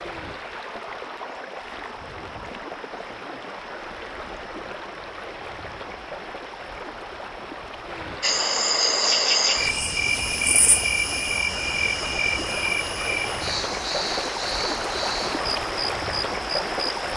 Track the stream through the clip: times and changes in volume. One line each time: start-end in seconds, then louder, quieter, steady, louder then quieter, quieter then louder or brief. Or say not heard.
0.0-17.1 louder.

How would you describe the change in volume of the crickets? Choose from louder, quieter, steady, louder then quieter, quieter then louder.
quieter.